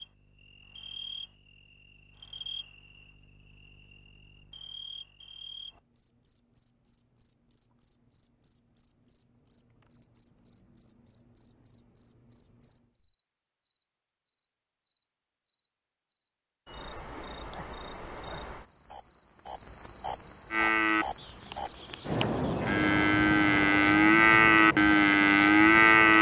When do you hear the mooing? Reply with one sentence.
You can hear the mooing from 20.5 to 26.1 s.